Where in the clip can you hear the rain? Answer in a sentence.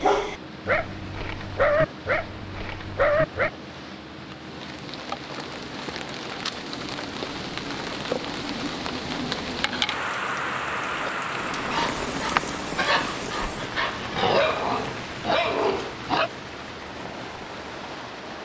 The rain can be heard from 4.3 to 18.4 s.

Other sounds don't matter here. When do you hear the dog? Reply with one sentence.
You can hear the dog from 0.0 to 3.5 s and from 10.9 to 16.3 s.